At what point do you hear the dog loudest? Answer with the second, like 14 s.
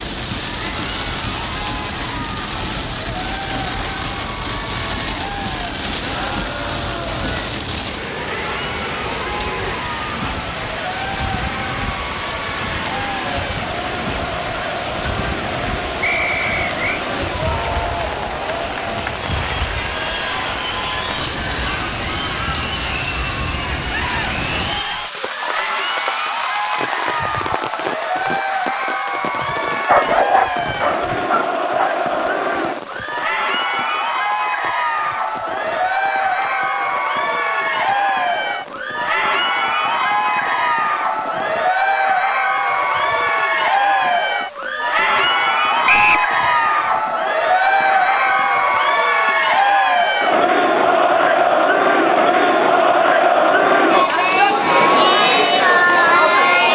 30 s.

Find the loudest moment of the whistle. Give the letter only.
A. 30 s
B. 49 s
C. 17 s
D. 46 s
D.